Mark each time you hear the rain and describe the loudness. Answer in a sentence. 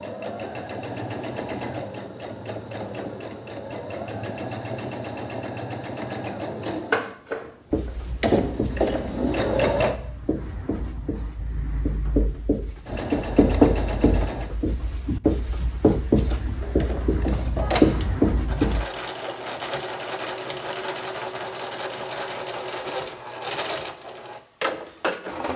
You can't hear the rain here.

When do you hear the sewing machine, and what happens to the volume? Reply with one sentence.
The sewing machine can be heard from 0.0 to 9.9 s, getting louder; briefly from 12.8 to 14.5 s; and from 16.2 to 25.5 s, at a steady volume.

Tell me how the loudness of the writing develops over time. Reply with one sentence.
The loudness of the writing goes up.